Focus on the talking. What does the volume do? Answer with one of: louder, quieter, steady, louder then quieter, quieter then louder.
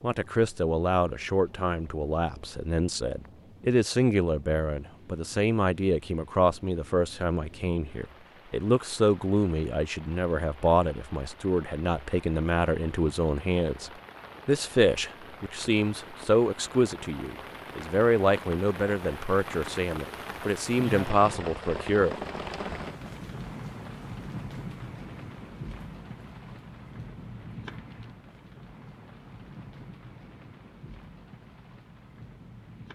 steady.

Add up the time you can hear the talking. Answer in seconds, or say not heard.
22 s.